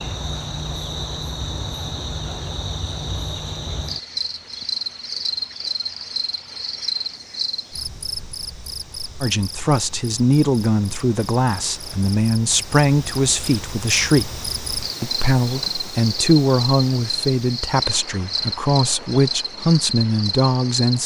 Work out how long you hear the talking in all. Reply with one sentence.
The talking can be heard for 11 seconds in total.